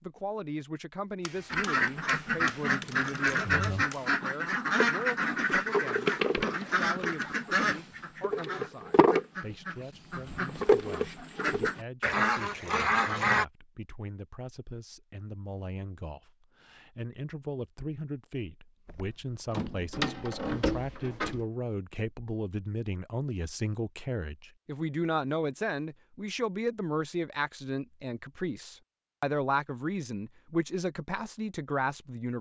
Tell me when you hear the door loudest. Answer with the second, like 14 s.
21 s.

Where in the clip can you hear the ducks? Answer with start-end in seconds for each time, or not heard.
1.5-13.4.